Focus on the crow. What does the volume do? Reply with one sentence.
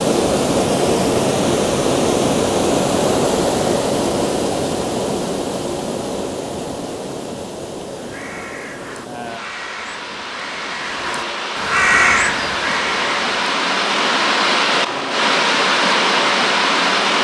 The volume of the crow goes up.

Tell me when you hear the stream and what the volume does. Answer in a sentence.
The stream can be heard from 0.0 to 17.1 s, getting quieter then louder.